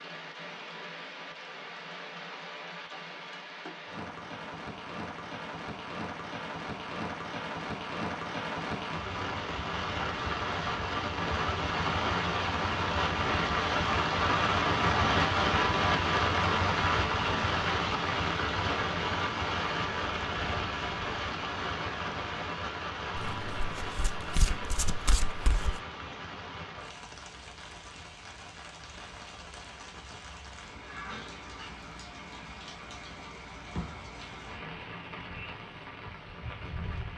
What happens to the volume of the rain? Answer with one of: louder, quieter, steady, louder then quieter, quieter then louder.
louder then quieter.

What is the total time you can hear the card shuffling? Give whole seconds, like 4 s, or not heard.
3 s.